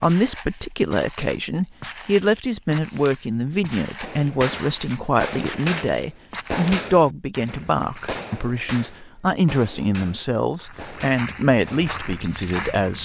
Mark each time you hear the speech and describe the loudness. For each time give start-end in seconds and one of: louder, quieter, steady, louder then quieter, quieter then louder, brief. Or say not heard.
0.0-13.0 steady.